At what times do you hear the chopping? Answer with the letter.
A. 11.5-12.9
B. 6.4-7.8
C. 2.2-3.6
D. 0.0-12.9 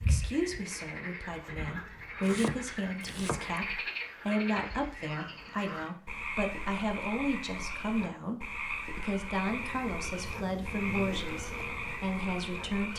C.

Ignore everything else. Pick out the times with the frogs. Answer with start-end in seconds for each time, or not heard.
0.0-12.9.